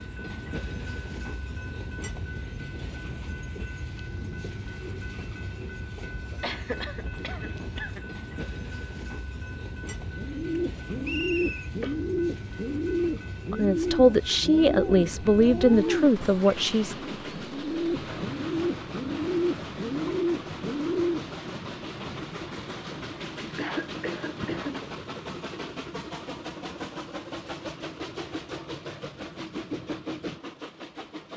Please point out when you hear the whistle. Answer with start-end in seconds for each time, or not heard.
11.0-11.7.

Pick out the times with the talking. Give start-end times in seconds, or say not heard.
13.5-16.9.